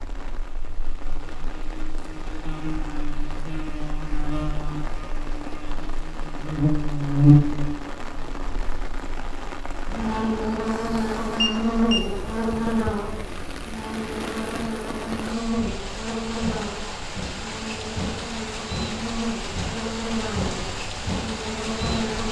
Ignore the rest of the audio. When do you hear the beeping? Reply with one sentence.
You can hear the beeping from 10.9 to 12.1 s.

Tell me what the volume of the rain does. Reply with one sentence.
The volume of the rain goes up.